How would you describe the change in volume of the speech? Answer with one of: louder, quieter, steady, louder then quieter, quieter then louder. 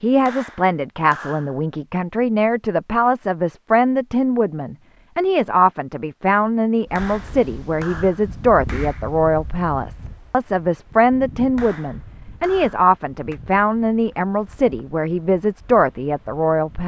steady.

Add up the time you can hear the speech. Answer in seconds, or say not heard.
17 s.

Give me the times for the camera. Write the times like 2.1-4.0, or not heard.
not heard.